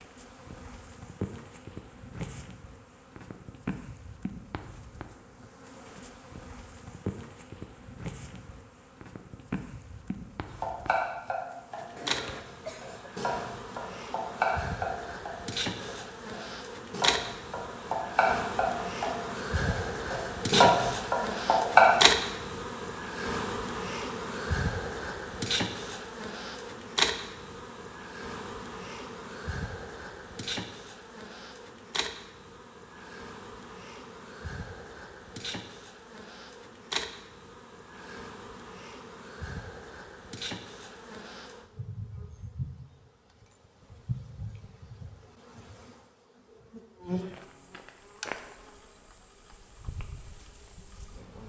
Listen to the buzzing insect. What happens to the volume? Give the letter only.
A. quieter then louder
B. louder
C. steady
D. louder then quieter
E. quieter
D.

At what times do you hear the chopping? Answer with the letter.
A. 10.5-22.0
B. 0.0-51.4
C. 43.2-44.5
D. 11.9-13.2
A.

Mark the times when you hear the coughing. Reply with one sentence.
The coughing can be heard from 11.9 to 13.2 s.